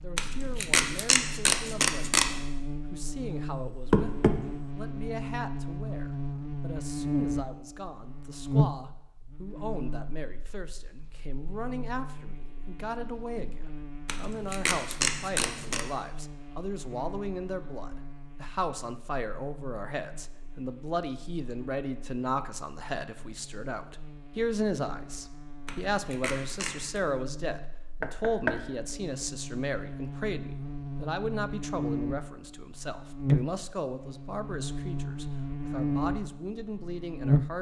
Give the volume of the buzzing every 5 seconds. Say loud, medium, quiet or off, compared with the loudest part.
medium, loud, quiet, quiet, quiet, quiet, loud, loud.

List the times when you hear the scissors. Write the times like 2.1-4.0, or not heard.
0.1-2.4, 14.1-15.8, 25.6-27.0.